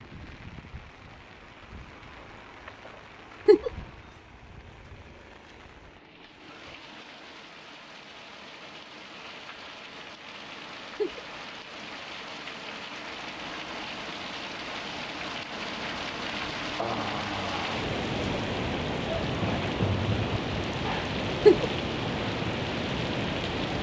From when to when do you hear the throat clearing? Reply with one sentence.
The throat clearing can't be heard in this clip.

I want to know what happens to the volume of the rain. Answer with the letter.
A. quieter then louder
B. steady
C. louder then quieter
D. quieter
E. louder
E.